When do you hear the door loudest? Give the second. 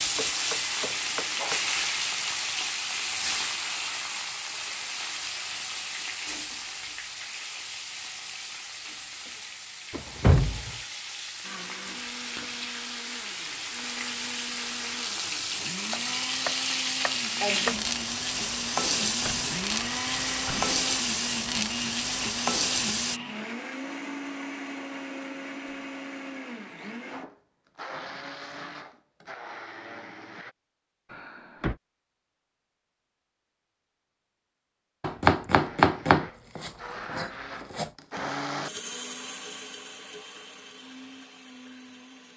10 s.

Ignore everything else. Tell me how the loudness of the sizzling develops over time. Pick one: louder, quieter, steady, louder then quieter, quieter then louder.
quieter then louder.